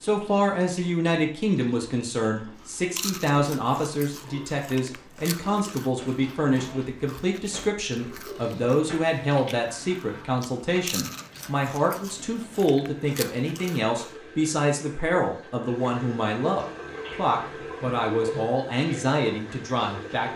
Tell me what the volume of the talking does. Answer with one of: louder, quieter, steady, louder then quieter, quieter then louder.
steady.